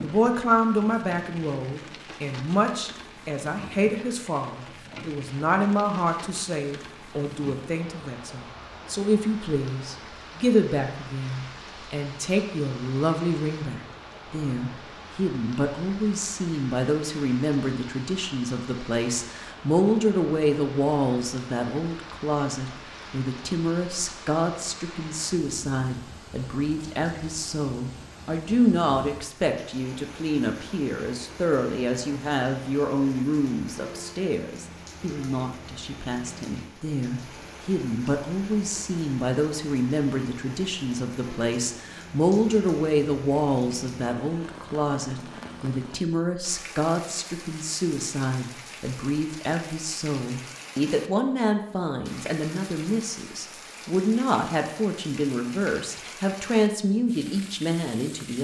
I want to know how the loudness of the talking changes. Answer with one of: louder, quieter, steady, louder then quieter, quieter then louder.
steady.